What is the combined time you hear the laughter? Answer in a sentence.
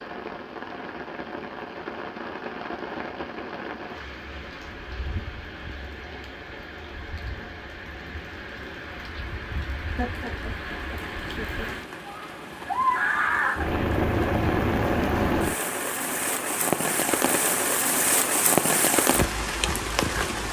You can hear the laughter for 2 seconds altogether.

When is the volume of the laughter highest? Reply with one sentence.
The volume of the laughter peaks at 10 seconds.